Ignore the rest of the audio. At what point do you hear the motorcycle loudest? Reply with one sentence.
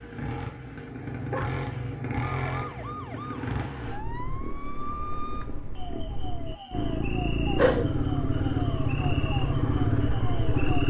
The volume of the motorcycle peaks at 8 seconds.